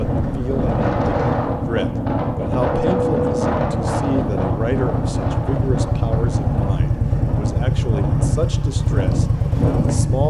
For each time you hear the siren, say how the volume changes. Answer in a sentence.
You can't hear the siren here.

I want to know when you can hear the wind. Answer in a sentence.
The wind can be heard from 0.0 to 10.2 s.